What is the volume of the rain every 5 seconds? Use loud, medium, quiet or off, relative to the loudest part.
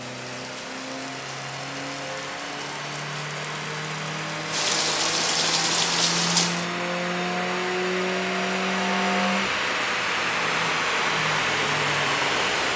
medium, loud, off.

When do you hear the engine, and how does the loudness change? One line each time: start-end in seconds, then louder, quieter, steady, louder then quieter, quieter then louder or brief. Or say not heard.
0.0-12.7 louder.